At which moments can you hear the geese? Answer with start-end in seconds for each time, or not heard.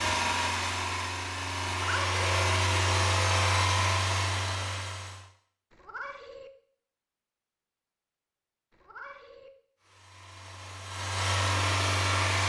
not heard.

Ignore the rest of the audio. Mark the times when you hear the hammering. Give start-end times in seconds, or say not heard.
not heard.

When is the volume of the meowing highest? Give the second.
2 s.